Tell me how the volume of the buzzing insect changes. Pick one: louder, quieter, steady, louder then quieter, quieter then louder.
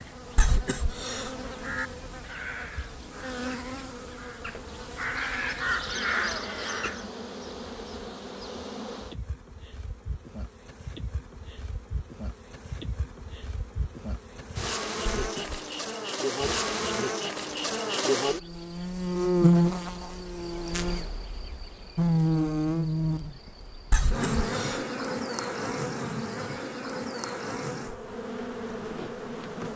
louder then quieter.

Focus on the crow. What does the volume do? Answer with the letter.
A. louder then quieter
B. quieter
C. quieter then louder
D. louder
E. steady
C.